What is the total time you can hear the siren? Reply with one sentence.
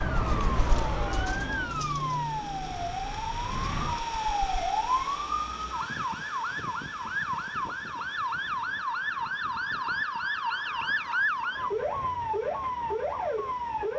The siren can be heard for 14 seconds in total.